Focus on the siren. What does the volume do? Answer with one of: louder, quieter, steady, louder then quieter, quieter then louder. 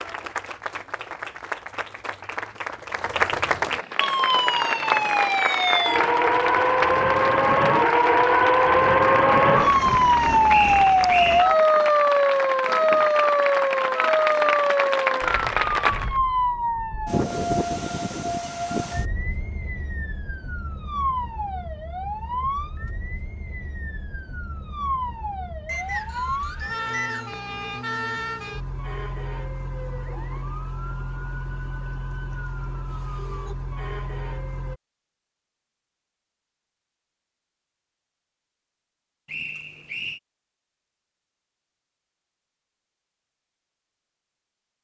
quieter.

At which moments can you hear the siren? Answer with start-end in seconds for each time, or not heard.
4.0-34.8.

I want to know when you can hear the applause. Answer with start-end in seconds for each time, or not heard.
0.0-16.2.